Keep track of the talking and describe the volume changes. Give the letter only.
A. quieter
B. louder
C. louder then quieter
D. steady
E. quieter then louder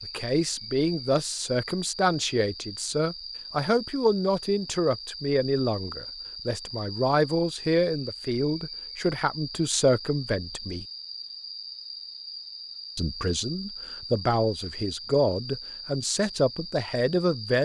D.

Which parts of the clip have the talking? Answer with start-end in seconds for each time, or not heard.
0.0-10.8, 12.9-17.6.